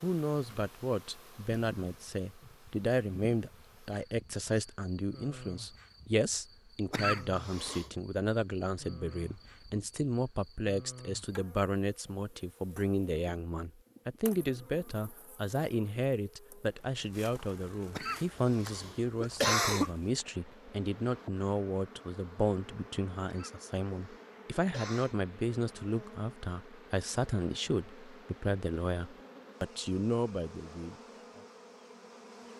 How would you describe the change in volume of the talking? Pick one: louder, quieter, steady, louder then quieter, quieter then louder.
steady.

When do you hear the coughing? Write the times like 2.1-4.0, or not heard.
6.9-7.8, 17.9-19.9, 23.2-25.2.